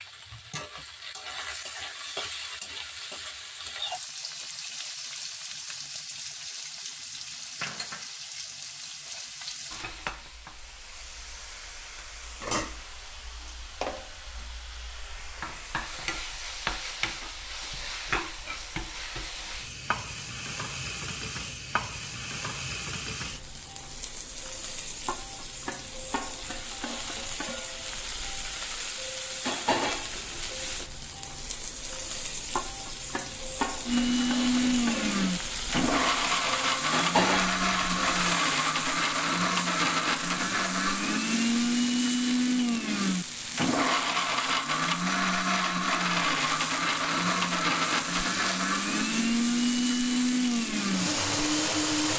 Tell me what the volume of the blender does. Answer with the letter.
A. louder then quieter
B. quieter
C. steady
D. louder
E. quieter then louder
C.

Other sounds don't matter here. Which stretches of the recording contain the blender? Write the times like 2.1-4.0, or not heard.
33.9-52.1.